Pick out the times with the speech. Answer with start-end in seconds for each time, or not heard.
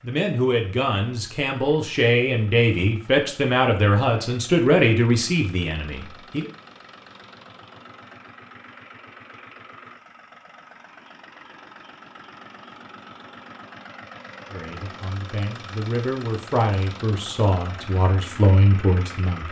0.0-6.5, 14.4-19.4.